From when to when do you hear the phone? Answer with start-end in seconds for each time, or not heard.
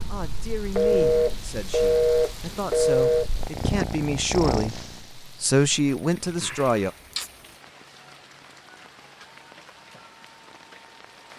0.8-3.2, 6.4-7.3.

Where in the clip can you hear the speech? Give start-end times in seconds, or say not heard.
0.1-6.9.